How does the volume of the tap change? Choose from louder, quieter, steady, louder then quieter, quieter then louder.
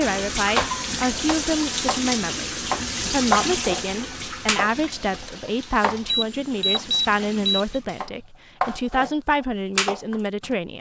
quieter.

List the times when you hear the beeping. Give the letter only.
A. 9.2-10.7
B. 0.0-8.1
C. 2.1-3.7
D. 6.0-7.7
D.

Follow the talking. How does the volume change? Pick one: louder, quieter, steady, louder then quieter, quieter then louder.
steady.